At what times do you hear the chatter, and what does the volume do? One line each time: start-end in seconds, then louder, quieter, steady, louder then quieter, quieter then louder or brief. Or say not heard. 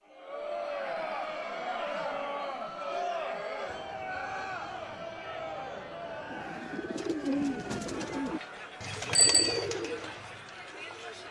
0.1-11.2 quieter.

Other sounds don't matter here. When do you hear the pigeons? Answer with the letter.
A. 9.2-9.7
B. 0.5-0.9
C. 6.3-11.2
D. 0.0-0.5
C.